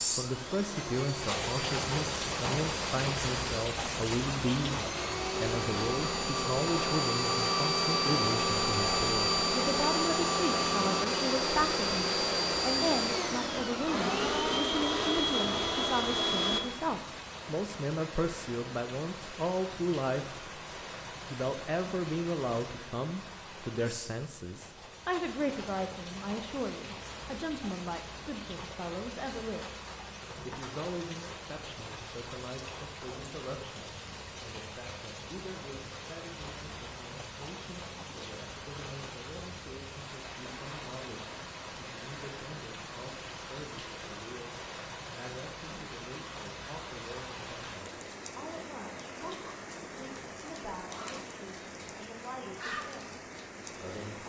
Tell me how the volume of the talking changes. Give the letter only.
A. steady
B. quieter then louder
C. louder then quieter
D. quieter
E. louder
D.